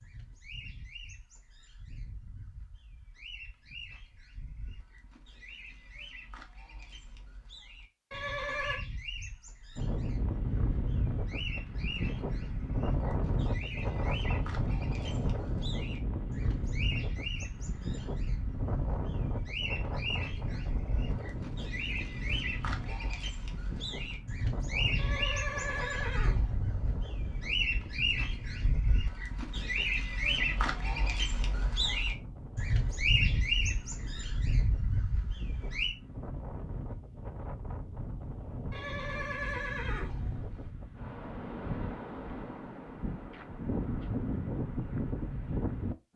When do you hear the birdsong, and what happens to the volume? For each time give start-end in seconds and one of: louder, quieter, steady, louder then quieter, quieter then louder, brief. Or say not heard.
0.0-36.0 louder.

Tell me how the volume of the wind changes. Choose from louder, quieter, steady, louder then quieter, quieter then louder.
quieter then louder.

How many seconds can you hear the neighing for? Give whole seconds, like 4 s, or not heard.
4 s.